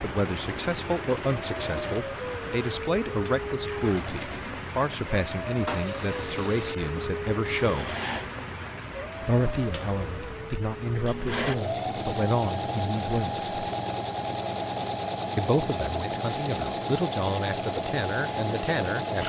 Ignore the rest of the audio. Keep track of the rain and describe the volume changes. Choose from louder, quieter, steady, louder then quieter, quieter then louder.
quieter.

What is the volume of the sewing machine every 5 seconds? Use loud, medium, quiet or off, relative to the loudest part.
medium, medium, loud, loud.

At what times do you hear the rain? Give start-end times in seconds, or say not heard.
0.0-19.2.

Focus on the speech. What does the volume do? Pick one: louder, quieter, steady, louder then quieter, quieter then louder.
steady.